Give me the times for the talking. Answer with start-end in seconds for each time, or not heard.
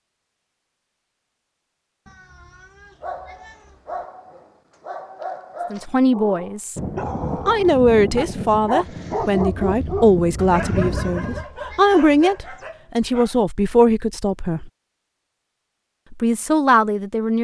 5.7-6.8, 7.5-14.7, 16.1-17.3.